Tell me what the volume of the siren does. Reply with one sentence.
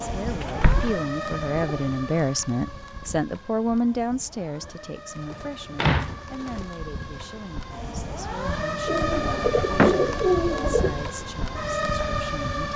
The loudness of the siren goes down, then up.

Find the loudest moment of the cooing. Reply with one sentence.
The volume of the cooing peaks at 10 seconds.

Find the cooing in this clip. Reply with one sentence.
You can hear the cooing from 0.2 to 1.9 s, from 4.5 to 6.8 s and from 8.8 to 11.1 s.